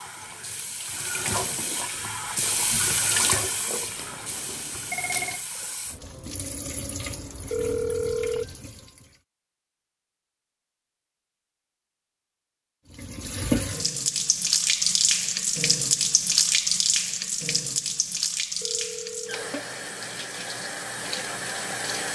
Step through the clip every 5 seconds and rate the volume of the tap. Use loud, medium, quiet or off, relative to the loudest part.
medium, quiet, loud, loud, medium.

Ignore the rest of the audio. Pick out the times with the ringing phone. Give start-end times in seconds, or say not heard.
4.0-5.4, 7.5-8.7, 18.6-19.6.